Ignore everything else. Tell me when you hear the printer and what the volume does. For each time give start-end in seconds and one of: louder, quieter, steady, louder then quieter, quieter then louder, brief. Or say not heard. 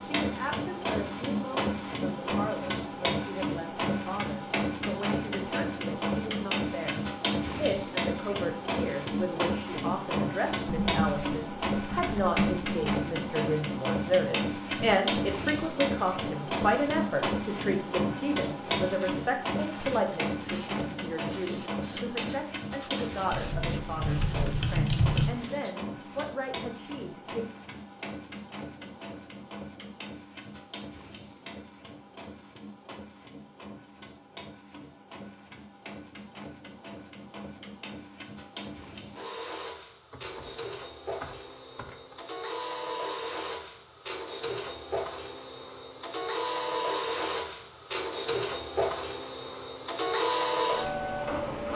0.0-51.7 quieter then louder.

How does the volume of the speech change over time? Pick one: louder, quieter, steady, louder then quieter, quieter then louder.
louder then quieter.